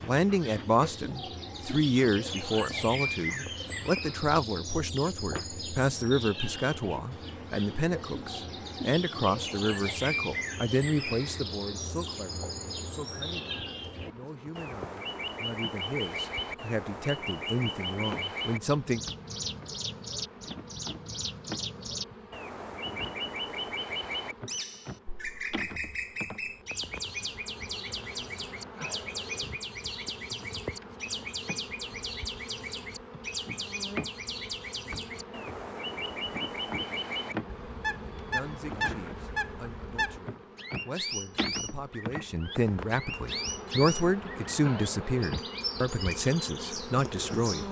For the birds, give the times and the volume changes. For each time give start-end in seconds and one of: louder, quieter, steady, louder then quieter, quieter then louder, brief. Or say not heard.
0.0-47.6 steady.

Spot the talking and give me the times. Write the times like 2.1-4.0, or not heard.
0.0-19.0, 38.0-47.6.